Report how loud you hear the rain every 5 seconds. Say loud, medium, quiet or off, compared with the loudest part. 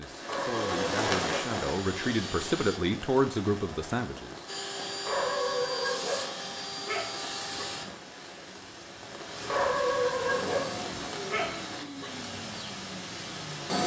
loud, medium, loud.